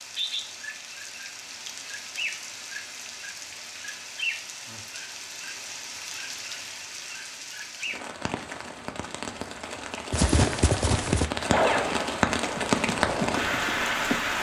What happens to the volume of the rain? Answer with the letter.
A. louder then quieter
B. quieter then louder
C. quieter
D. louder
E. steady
D.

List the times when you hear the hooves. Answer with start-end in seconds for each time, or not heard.
10.1-14.3.